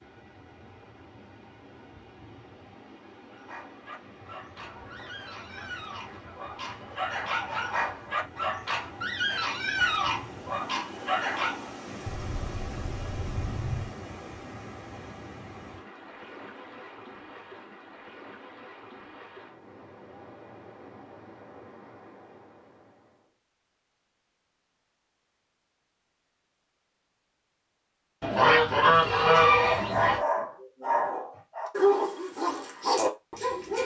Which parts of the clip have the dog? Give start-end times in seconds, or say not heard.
3.3-11.7, 29.6-33.8.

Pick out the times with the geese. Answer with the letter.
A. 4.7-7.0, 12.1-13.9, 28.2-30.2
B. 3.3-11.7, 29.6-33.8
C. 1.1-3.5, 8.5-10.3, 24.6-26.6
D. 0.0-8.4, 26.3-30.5
A.